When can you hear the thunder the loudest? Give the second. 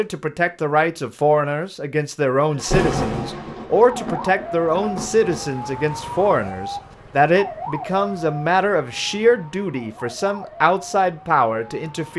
3 s.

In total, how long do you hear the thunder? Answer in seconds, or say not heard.
3 s.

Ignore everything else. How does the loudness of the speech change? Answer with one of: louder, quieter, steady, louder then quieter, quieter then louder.
steady.